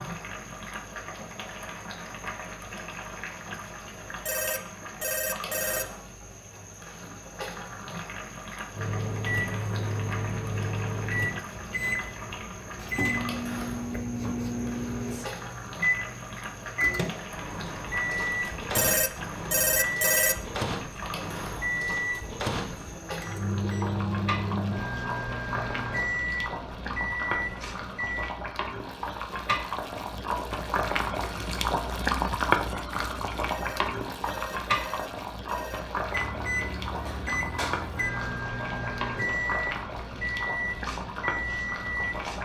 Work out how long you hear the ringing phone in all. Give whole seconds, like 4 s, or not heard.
6 s.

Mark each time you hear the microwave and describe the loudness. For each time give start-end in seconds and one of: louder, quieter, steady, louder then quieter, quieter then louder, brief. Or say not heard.
8.8-28.3 steady
36.0-42.4 steady.